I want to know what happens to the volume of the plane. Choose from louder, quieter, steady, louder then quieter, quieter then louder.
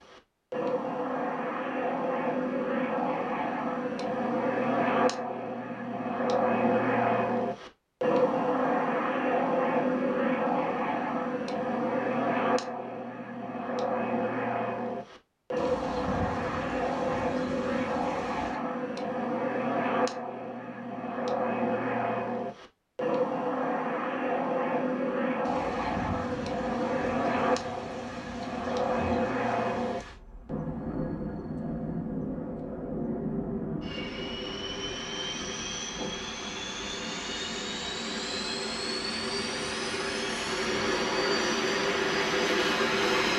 steady.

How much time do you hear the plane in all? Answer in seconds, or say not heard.
43 s.